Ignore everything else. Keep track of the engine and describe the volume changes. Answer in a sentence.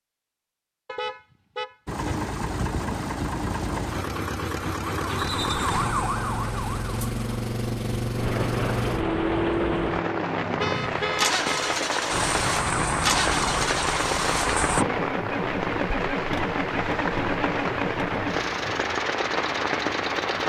The volume of the engine stays about the same.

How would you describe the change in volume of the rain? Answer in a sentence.
The volume of the rain stays about the same.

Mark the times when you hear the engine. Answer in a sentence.
The engine can be heard from 1.9 to 20.4 s.